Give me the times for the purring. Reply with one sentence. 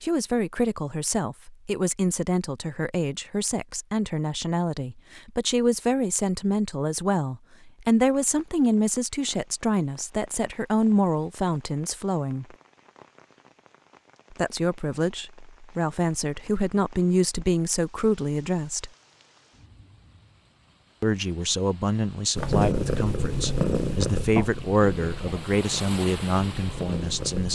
You can hear the purring from 22.4 to 27.5 s.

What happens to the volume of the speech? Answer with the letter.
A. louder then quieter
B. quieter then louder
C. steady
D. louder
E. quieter
C.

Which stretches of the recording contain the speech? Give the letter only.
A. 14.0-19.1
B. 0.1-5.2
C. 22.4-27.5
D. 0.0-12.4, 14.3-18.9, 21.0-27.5
D.